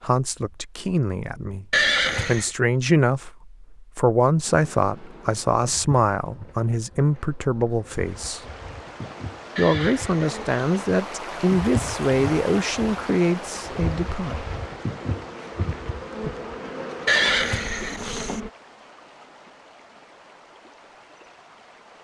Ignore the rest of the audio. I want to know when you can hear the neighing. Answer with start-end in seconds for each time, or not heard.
1.7-2.5, 9.6-10.9, 17.1-18.4.